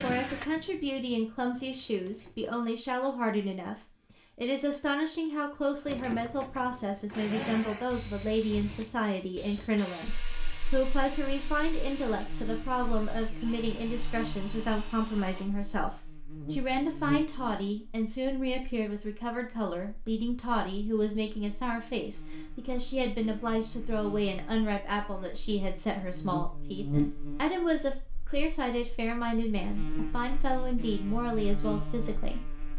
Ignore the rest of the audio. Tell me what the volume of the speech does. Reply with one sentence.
The loudness of the speech stays about the same.